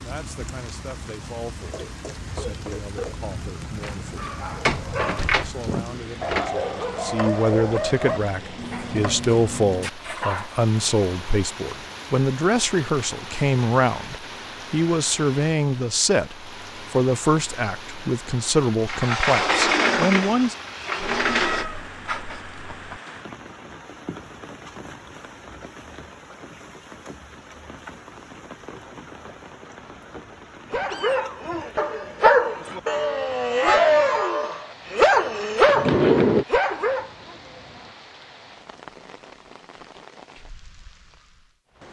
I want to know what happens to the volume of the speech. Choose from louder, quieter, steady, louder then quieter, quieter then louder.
louder.